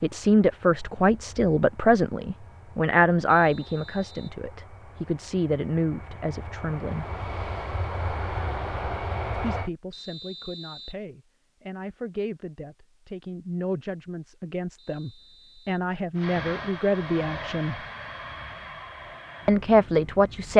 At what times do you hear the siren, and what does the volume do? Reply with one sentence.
You can't hear the siren here.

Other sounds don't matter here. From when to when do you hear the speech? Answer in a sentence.
The speech can be heard from 0.0 to 7.1 s, from 9.4 to 17.8 s and from 19.4 to 20.5 s.